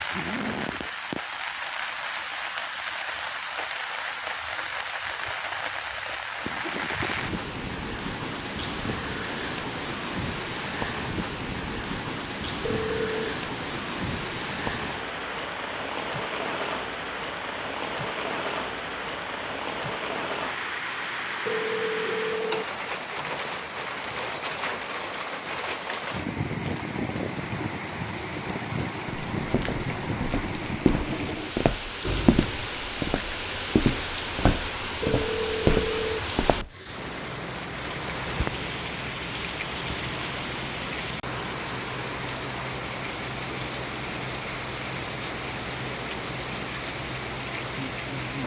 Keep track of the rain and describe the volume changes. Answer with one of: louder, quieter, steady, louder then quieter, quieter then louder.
steady.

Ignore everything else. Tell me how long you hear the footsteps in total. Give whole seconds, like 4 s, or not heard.
7 s.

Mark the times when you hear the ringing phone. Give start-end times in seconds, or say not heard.
12.6-13.3, 21.4-22.6, 35.0-36.2.